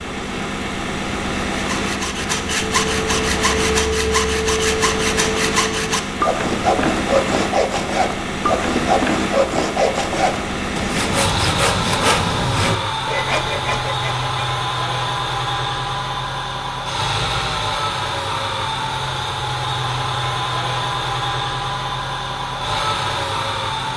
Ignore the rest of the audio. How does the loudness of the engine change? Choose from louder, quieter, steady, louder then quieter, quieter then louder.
steady.